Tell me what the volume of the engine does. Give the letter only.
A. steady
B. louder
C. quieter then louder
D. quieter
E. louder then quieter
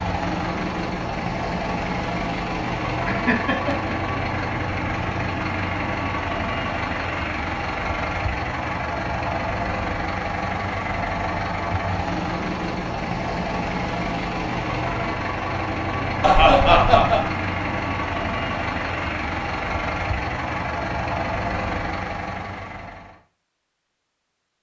A.